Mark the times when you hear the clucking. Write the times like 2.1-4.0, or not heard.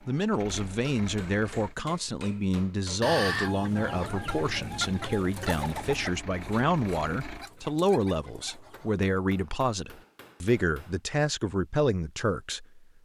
3.0-9.2.